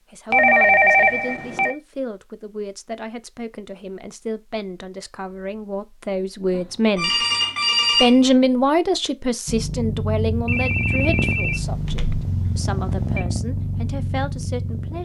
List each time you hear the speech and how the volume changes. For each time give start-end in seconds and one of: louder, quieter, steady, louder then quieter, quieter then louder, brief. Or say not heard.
0.1-7.2 louder
8.0-14.9 quieter.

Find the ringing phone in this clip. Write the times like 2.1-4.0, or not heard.
0.3-1.8, 6.5-8.2, 10.4-13.2.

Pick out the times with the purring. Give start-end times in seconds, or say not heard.
9.4-14.9.